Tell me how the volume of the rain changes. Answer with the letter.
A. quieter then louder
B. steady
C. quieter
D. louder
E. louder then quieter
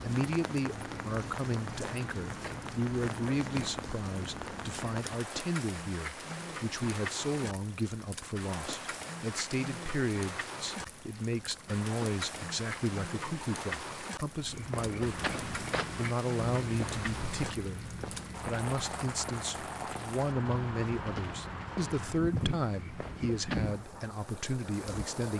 B.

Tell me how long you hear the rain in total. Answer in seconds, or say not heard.
25 s.